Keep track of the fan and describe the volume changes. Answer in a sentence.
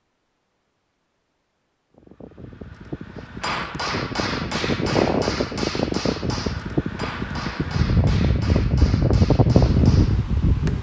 The loudness of the fan goes up.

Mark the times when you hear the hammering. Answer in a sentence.
The hammering can be heard from 3.2 to 10.7 s.